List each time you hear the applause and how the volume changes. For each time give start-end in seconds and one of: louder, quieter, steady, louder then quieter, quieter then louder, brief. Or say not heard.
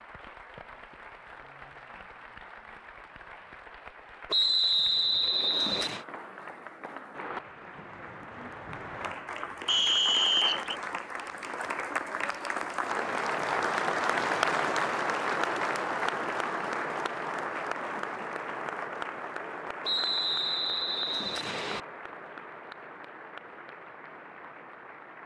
0.0-25.2 louder then quieter.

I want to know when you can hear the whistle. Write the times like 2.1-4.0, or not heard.
4.3-6.0, 9.7-10.8, 19.8-21.8.